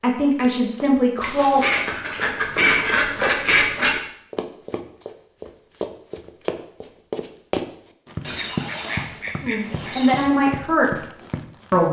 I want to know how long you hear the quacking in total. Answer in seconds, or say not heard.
5 s.